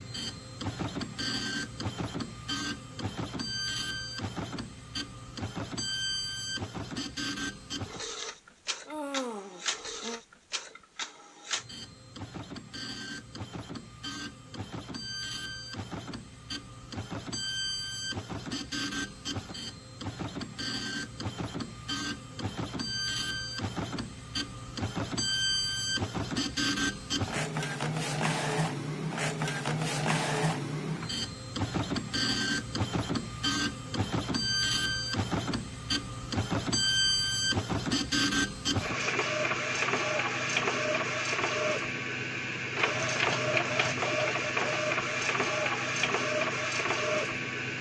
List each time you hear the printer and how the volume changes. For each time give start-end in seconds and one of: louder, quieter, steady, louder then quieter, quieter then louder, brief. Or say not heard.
0.0-47.7 louder.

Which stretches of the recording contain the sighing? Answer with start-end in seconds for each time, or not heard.
8.8-10.2.